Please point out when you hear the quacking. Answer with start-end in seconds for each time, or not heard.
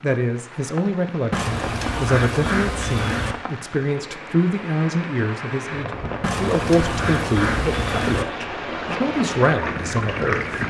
1.3-3.4, 6.2-8.2.